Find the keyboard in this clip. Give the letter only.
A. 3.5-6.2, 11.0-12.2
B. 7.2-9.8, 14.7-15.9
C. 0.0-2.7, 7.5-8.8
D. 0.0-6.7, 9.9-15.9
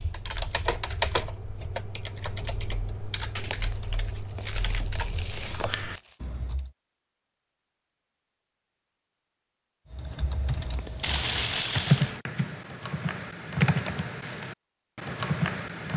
D.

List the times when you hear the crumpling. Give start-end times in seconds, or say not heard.
3.5-6.2, 11.0-12.2.